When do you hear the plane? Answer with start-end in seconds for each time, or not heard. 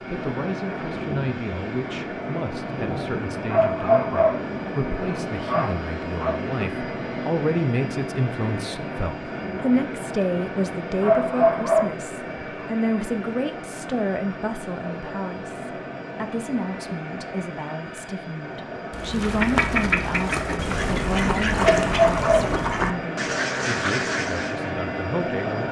0.0-25.6.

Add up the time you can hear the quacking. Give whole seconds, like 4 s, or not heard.
6 s.